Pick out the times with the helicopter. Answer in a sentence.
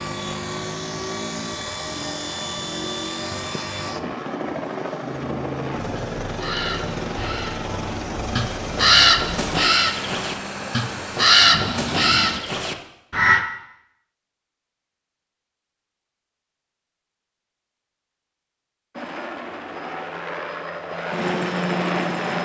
You can hear the helicopter from 0.0 to 12.4 s and from 18.9 to 22.4 s.